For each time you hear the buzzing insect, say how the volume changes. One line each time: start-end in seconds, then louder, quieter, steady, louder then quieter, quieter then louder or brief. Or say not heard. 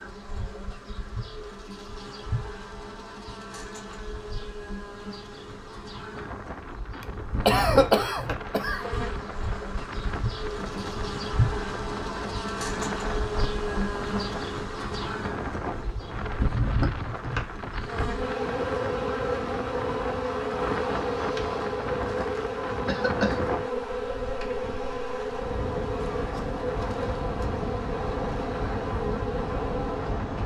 0.0-30.4 louder.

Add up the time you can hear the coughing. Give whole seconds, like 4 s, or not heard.
2 s.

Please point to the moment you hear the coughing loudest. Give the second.
8 s.